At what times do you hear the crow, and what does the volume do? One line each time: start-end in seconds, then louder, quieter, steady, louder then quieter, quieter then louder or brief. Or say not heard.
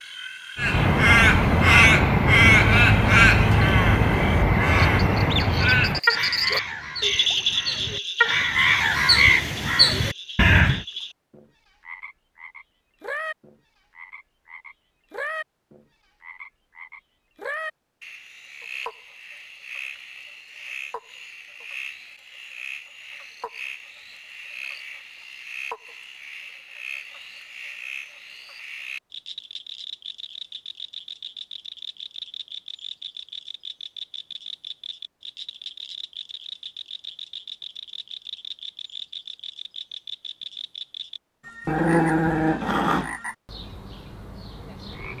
0.6-10.8 quieter then louder.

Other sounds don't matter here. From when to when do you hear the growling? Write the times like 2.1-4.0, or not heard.
41.6-43.1.